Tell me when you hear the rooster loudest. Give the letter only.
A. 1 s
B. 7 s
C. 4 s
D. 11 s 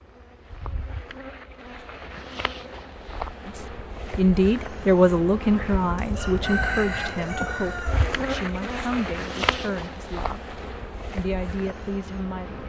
B.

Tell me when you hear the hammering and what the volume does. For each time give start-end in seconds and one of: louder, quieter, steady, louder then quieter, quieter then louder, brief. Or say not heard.
not heard.